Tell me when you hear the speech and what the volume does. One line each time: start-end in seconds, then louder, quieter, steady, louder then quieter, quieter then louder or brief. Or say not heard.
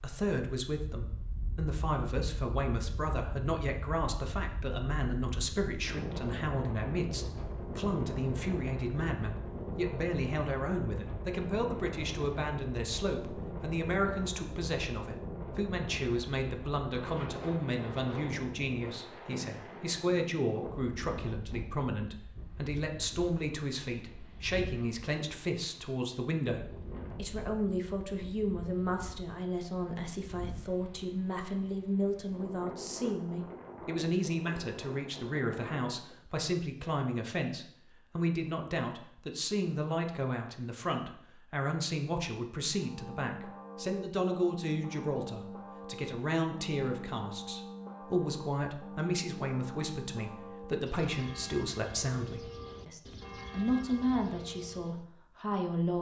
0.0-55.9 steady.